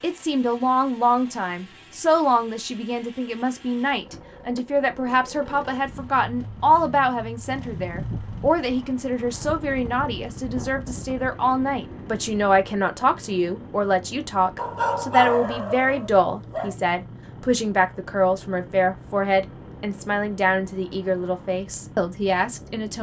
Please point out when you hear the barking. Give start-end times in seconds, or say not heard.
14.6-16.8.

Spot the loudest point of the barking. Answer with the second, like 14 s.
15 s.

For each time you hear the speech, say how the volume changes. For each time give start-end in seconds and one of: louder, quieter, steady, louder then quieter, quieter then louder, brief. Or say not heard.
0.0-22.9 steady.